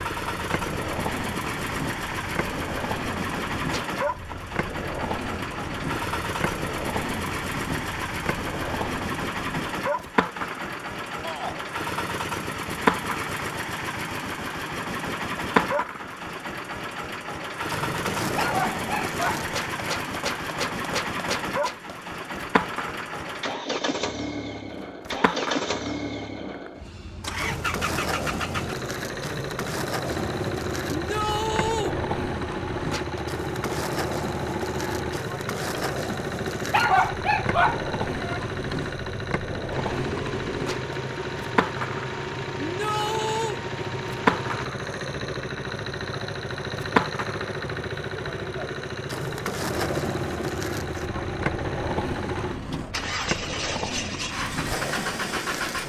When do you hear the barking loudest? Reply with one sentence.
The loudest moment of the barking is at 37 seconds.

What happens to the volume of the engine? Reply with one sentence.
The loudness of the engine stays about the same.